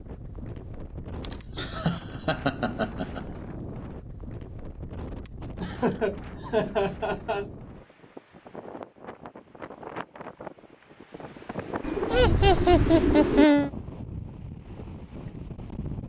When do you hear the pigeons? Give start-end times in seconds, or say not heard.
11.8-13.4.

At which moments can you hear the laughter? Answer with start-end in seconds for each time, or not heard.
1.2-3.2, 5.6-7.5, 12.1-13.7.